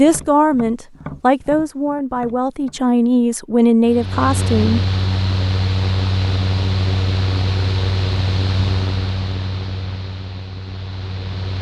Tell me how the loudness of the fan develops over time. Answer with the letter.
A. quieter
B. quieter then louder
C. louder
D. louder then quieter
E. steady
A.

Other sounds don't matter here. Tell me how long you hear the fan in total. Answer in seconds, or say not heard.
8 s.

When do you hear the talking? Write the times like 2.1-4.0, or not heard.
0.0-4.8.